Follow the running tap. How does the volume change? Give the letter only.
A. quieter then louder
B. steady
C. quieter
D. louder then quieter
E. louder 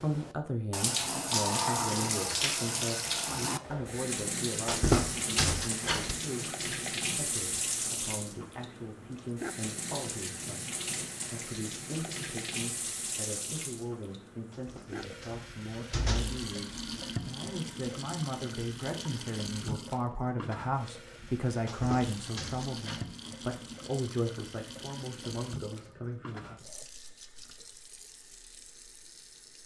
C.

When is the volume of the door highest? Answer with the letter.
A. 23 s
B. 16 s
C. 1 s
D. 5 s
D.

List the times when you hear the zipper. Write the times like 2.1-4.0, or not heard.
not heard.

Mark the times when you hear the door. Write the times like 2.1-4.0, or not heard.
4.7-6.2, 14.7-16.4, 21.6-23.1.